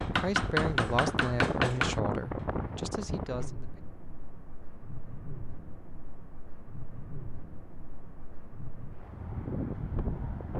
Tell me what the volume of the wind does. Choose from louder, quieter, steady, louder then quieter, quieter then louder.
quieter then louder.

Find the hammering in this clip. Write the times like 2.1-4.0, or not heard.
0.0-2.0.